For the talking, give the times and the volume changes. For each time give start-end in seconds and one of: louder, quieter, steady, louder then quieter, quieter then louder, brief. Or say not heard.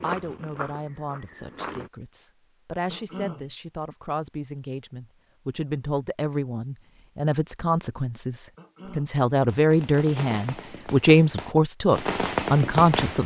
0.0-13.2 louder.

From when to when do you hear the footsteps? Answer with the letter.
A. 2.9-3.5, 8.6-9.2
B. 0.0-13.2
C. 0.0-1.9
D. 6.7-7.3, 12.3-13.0
C.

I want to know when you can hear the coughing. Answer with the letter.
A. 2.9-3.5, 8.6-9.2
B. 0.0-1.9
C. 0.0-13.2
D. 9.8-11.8
A.